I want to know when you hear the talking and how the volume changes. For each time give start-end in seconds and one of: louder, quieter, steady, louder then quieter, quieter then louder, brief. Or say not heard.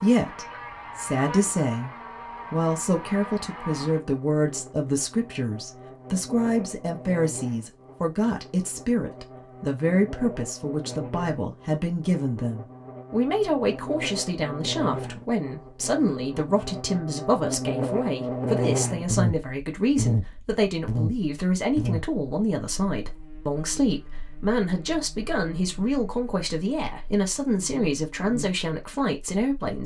0.0-29.8 steady.